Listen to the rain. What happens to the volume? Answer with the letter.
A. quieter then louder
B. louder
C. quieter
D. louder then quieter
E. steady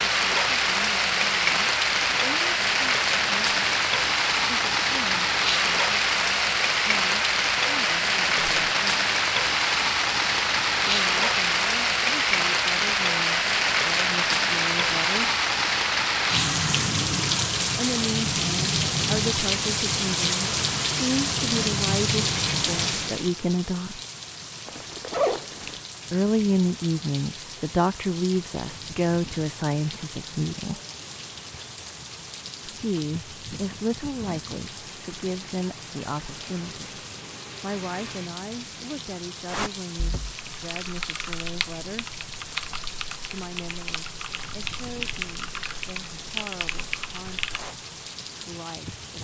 C.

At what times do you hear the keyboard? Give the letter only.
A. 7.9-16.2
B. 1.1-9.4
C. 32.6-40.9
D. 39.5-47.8
D.